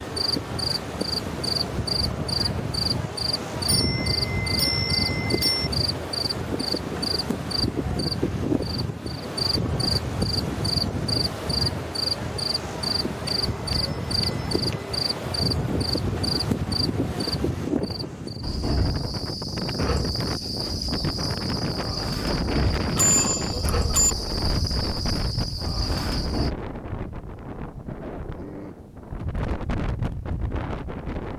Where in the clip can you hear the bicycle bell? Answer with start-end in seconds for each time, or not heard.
3.6-5.7, 13.2-14.9, 22.9-24.1.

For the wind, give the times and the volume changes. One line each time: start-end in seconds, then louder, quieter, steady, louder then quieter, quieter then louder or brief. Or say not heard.
0.0-31.3 steady.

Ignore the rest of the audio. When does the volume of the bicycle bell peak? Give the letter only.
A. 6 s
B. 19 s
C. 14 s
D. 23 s
D.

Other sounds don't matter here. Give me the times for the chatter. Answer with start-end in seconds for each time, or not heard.
not heard.